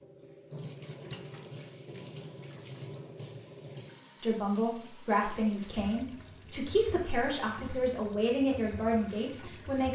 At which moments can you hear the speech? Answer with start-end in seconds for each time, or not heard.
4.2-9.9.